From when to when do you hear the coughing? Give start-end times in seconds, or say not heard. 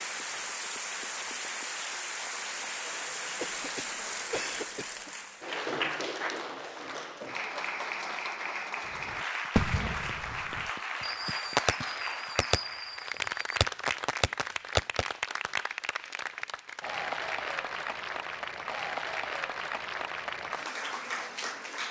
3.4-5.0.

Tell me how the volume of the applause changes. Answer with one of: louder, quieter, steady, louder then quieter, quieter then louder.
steady.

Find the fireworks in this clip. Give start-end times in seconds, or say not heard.
8.9-15.1.